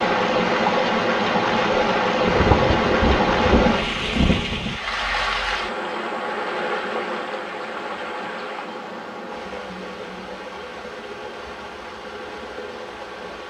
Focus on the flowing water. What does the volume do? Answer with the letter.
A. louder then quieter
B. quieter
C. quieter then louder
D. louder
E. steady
B.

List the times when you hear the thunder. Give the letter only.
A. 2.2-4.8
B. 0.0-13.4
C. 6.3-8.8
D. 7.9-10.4
A.